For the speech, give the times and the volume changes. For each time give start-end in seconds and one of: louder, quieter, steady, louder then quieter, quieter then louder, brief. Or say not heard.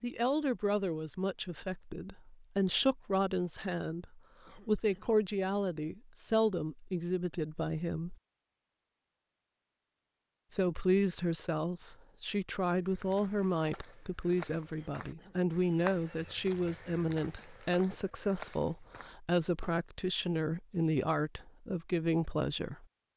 0.0-8.2 steady
10.5-22.9 steady.